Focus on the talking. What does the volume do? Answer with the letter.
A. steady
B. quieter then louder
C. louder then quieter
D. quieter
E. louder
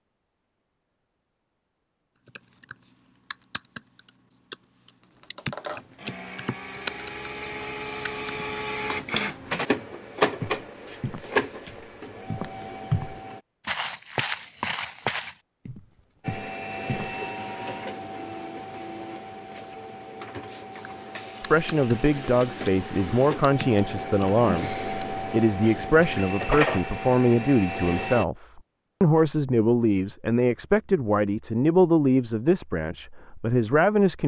A.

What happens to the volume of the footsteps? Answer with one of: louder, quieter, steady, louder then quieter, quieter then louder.
louder then quieter.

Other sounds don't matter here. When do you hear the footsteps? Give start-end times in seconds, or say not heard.
10.4-17.1.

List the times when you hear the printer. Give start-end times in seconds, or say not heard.
5.0-13.4, 16.2-28.2.